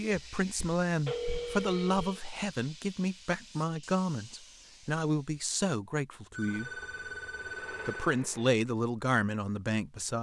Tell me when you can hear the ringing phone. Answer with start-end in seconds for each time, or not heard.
0.1-2.2, 6.3-8.2.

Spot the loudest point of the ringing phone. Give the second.
1 s.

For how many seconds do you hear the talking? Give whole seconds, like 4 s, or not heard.
9 s.